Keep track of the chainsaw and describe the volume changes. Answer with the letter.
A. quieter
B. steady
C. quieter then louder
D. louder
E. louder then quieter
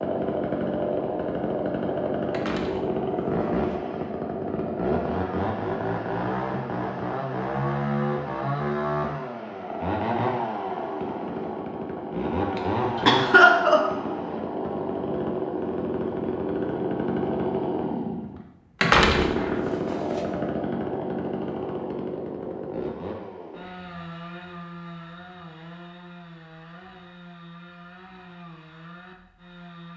A.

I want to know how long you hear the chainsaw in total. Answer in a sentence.
You can hear the chainsaw for 30 seconds altogether.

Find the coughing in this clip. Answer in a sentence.
You can hear the coughing from 12.6 to 13.8 s.